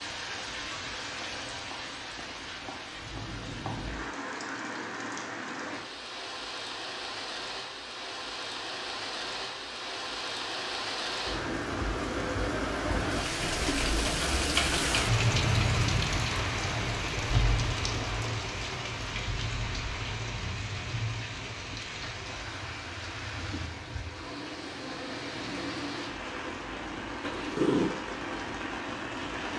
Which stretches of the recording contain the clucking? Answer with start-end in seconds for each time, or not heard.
not heard.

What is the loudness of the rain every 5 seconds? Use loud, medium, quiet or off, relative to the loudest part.
medium, medium, loud, loud, medium, medium.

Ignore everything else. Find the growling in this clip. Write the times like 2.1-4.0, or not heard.
27.2-27.9.